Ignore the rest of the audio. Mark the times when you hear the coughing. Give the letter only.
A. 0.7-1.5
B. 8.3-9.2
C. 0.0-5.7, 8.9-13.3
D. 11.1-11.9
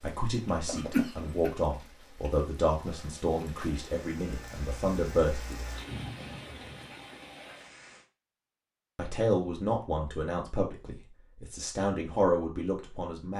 A.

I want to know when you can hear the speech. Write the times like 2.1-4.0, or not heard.
0.0-5.7, 8.9-13.3.